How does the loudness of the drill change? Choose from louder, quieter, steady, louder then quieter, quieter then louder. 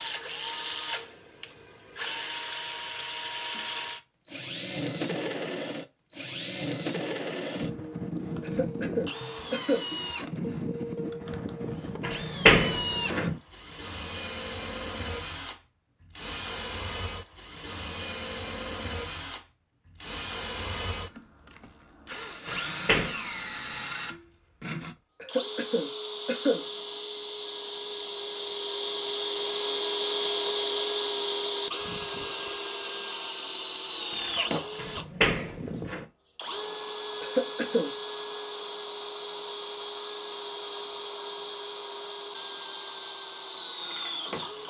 louder then quieter.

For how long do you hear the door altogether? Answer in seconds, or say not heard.
3 s.